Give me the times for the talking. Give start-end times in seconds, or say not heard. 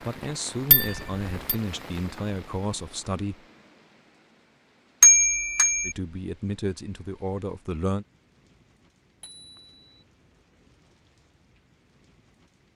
0.0-3.4, 5.8-8.1.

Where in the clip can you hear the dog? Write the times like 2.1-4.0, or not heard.
not heard.